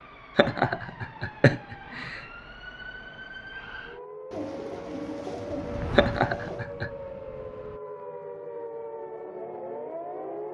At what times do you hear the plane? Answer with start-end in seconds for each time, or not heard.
5.5-7.8.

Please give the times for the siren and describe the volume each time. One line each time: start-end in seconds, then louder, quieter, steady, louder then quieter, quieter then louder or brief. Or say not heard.
0.0-10.4 louder.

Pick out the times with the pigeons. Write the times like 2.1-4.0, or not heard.
4.3-6.7.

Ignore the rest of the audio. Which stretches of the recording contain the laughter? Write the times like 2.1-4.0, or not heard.
0.3-2.2, 6.0-6.9.